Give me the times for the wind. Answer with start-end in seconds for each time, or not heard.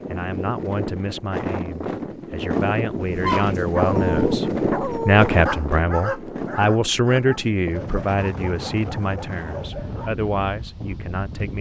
0.0-11.5.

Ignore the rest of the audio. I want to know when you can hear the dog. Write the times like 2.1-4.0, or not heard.
3.0-10.1.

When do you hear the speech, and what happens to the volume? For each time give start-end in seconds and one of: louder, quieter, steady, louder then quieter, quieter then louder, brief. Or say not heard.
0.1-11.5 louder then quieter.